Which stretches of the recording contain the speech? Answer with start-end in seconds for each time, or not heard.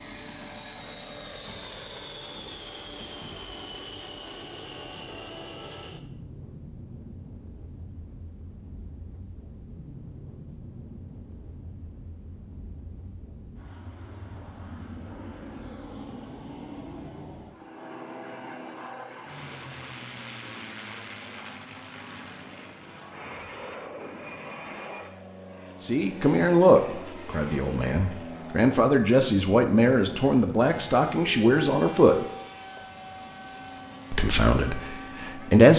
25.8-32.2, 34.1-35.7.